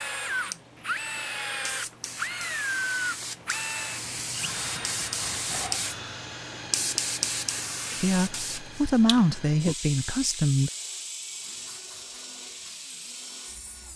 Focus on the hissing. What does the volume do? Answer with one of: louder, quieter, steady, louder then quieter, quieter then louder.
louder then quieter.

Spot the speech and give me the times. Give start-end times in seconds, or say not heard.
8.0-10.7.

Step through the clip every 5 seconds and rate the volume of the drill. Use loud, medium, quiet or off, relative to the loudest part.
loud, medium, quiet.